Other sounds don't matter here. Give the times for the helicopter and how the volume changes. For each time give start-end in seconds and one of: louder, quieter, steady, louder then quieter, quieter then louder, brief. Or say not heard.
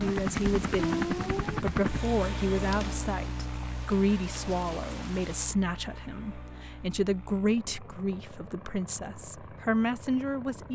0.0-10.7 quieter.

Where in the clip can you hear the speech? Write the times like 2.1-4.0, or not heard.
0.0-10.7.